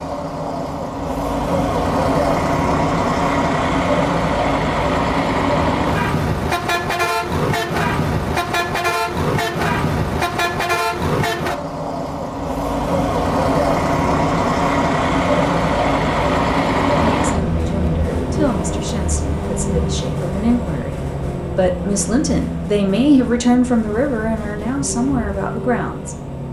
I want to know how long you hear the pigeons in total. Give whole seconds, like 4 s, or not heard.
not heard.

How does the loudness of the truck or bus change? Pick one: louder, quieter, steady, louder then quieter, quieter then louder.
quieter.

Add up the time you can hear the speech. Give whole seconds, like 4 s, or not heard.
9 s.